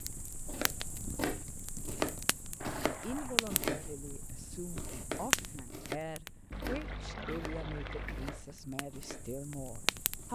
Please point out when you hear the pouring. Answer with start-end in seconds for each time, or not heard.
2.6-3.4, 6.5-8.4.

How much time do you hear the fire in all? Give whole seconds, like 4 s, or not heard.
10 s.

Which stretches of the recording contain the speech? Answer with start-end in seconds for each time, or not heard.
2.7-10.3.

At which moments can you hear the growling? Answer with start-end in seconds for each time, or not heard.
not heard.